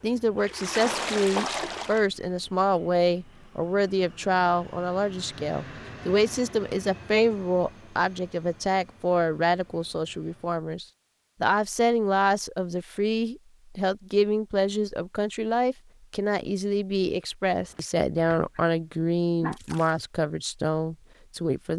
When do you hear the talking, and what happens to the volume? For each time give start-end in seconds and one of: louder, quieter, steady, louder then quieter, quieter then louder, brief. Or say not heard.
0.0-21.7 steady.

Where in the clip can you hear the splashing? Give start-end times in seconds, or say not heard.
0.3-2.0, 19.5-20.1.